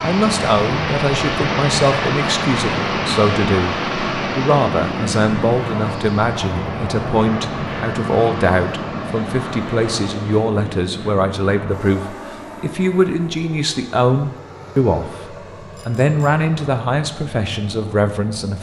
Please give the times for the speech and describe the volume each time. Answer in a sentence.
The speech can be heard from 0.0 to 18.5 s, at a steady volume.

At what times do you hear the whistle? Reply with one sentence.
You can't hear the whistle here.